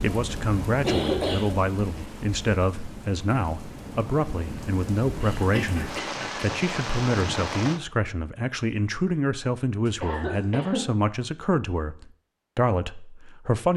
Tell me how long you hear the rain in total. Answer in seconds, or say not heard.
8 s.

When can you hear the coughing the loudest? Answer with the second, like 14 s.
1 s.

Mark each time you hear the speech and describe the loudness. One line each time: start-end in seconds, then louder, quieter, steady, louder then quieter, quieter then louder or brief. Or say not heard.
0.0-13.7 steady.